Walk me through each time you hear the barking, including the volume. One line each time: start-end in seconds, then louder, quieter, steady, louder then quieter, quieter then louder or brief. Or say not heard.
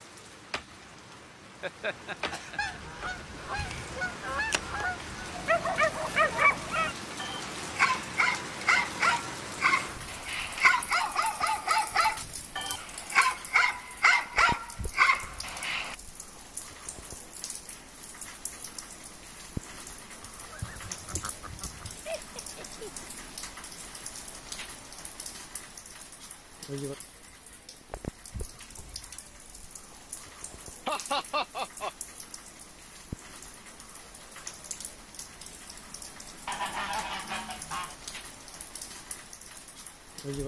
5.3-15.9 steady.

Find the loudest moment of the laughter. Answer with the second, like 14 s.
31 s.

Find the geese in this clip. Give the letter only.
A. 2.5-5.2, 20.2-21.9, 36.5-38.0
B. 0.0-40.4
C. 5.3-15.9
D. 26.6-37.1
A.